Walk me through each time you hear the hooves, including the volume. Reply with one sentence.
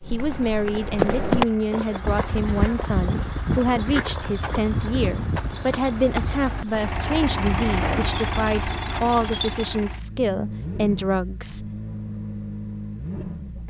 You can hear the hooves from 0.0 to 9.7 s, getting quieter.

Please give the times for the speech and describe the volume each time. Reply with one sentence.
You can hear the speech from 0.1 to 11.7 s, at a steady volume.